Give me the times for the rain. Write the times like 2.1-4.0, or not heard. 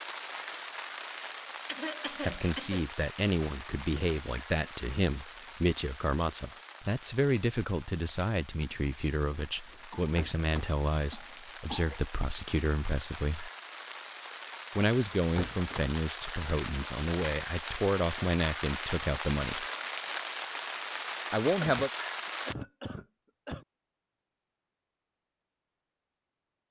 0.0-22.6.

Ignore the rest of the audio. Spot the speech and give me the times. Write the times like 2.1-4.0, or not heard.
2.2-13.5, 14.8-19.6, 21.3-21.9.